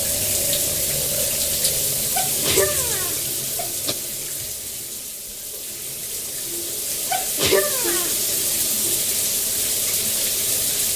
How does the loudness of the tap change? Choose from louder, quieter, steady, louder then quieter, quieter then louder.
quieter then louder.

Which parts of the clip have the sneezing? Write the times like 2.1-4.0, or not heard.
2.1-4.0, 7.1-8.2.